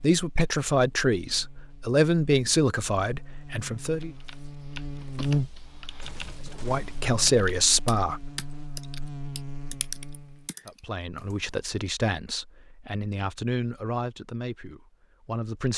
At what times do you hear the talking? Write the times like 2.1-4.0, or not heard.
0.0-4.1, 6.6-8.3, 10.7-15.7.